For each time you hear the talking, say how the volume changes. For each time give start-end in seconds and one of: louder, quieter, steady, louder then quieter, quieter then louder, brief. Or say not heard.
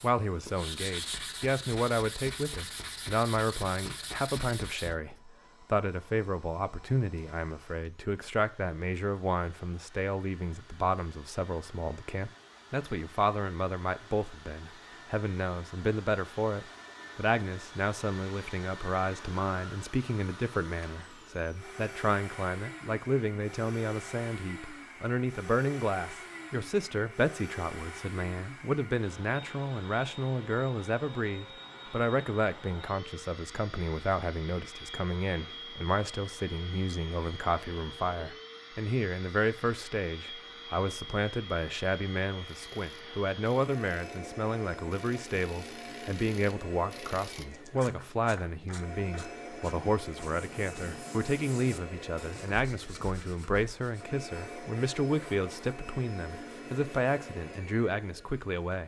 0.0-58.8 steady.